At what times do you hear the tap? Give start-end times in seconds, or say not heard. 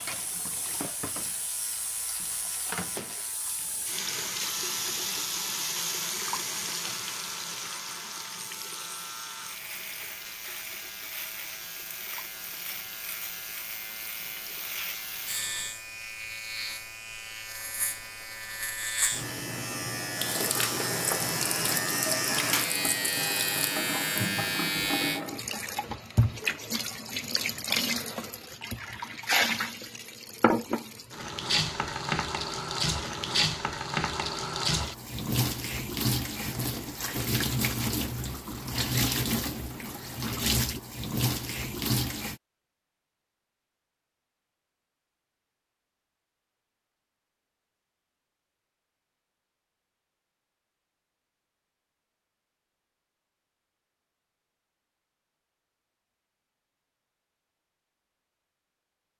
0.0-16.8, 20.1-42.4.